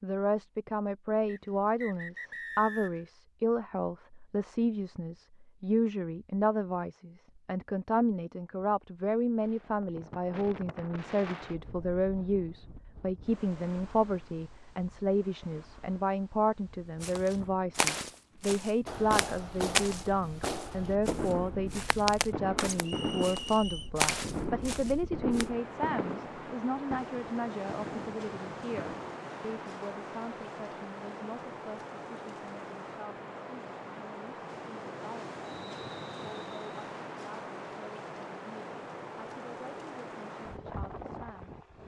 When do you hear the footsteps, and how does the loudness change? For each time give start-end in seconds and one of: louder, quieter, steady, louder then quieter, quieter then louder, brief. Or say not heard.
17.0-25.4 quieter then louder.